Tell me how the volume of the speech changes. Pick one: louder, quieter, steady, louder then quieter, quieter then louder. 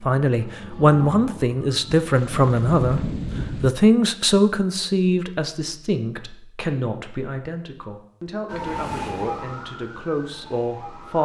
quieter.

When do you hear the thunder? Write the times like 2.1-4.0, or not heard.
2.0-3.7.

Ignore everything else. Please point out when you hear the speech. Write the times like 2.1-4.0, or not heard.
0.0-11.2.